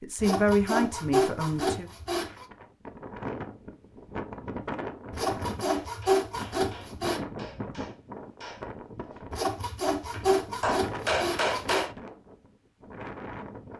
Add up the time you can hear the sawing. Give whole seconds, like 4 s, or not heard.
7 s.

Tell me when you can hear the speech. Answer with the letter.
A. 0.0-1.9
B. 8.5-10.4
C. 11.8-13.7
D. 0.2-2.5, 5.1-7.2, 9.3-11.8
A.